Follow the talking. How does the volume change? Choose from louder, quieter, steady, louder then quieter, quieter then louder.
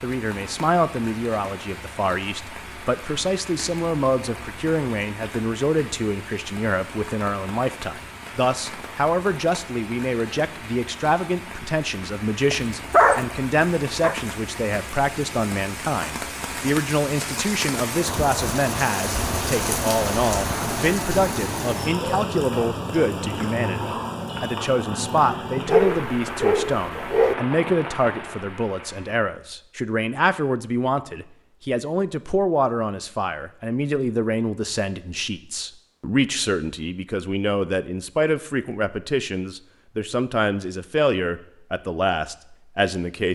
steady.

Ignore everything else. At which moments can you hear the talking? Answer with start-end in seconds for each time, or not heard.
0.0-43.3.